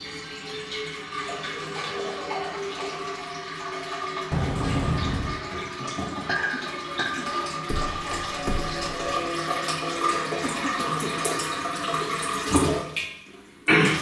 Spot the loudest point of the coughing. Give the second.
6 s.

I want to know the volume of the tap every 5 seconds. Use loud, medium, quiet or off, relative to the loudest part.
medium, medium, loud.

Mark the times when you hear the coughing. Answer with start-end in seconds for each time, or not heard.
1.2-3.0, 5.6-7.2, 10.4-11.2.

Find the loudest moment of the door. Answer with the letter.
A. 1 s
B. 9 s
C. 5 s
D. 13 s
C.